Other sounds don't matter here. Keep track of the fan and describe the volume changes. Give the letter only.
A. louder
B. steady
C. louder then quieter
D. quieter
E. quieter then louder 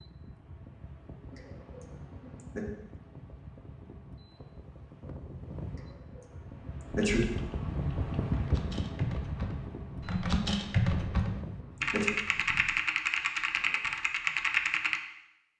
C.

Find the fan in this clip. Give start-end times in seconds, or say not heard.
0.0-12.8.